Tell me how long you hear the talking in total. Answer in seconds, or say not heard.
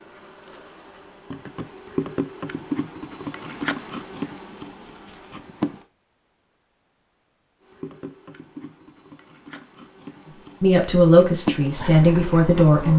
2 s.